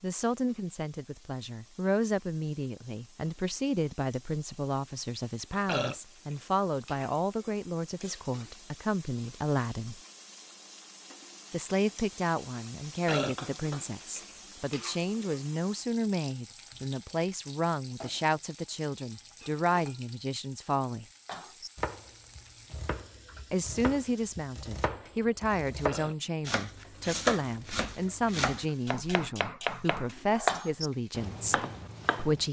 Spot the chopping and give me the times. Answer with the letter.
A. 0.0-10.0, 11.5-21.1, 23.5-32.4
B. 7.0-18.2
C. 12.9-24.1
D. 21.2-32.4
D.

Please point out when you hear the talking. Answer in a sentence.
The talking can be heard from 0.0 to 10.0 s, from 11.5 to 21.1 s and from 23.5 to 32.4 s.